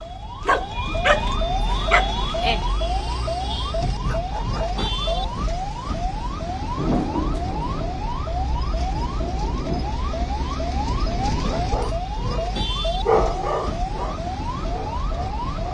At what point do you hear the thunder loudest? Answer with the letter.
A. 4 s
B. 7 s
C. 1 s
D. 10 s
B.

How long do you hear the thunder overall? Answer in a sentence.
You can hear the thunder for 3 seconds altogether.